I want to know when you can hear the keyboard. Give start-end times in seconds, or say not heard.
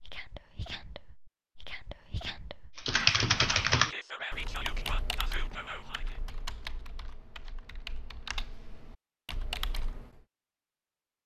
2.8-10.2.